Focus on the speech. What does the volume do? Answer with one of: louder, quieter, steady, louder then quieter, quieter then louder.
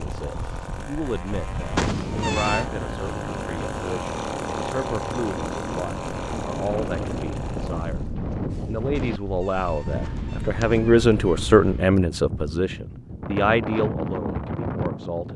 louder then quieter.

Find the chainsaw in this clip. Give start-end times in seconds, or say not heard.
0.0-8.2.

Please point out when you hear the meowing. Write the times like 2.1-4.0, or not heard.
1.8-2.7, 8.9-11.3.